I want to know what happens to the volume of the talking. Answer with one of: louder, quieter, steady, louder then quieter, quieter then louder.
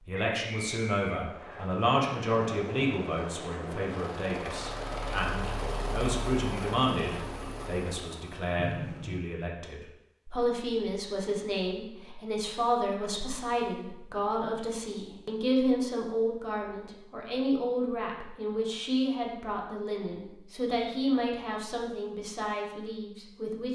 steady.